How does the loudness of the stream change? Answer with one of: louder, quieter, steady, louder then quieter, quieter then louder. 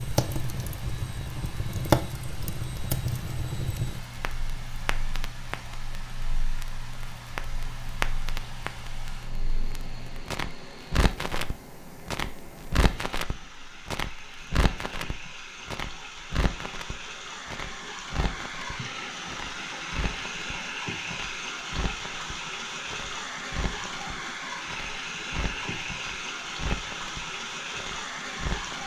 louder.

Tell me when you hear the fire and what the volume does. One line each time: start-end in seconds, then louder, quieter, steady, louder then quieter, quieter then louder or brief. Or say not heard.
0.0-28.8 quieter.